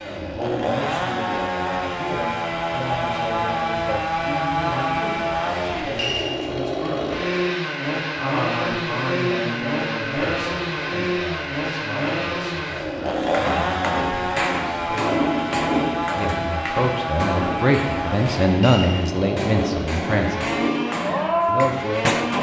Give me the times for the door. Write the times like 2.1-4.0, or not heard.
not heard.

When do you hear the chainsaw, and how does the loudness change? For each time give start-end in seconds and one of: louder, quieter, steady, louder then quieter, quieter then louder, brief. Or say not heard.
0.0-22.3 steady.